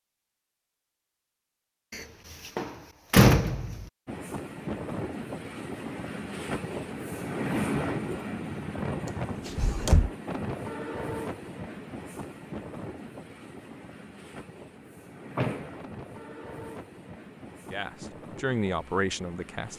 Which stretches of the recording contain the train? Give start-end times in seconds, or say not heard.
4.0-19.7.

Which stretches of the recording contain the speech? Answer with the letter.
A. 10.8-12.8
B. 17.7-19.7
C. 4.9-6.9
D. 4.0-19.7
B.